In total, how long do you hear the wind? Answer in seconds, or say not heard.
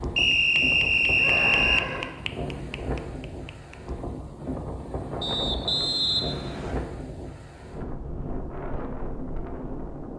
10 s.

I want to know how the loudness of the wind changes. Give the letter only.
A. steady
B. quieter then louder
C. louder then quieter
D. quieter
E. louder
A.